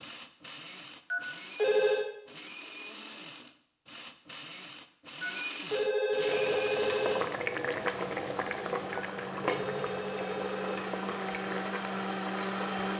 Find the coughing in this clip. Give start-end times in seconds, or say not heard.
not heard.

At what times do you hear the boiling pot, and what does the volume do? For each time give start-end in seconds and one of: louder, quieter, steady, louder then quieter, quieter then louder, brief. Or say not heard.
6.2-12.9 quieter.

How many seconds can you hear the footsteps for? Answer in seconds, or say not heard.
not heard.